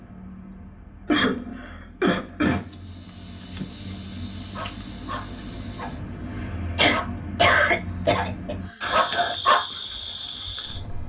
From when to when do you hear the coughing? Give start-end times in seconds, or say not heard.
1.1-2.7, 6.8-8.6.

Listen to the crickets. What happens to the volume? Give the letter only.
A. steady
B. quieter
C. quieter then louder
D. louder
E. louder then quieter
D.